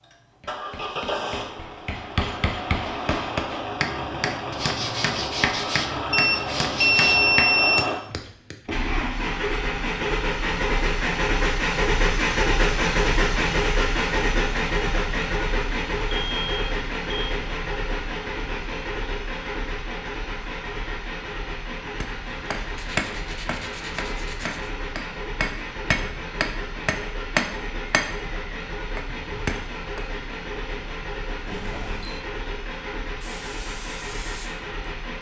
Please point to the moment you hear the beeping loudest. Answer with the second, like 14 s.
7 s.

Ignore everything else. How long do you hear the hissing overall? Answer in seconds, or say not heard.
2 s.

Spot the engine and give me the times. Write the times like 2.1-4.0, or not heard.
0.0-35.1.